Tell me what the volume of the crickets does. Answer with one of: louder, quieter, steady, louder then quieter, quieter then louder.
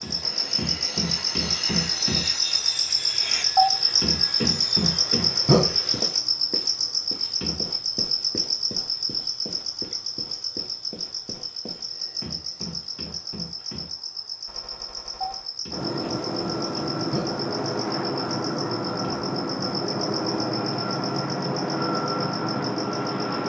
quieter.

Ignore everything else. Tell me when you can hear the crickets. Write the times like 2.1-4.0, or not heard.
0.0-23.4.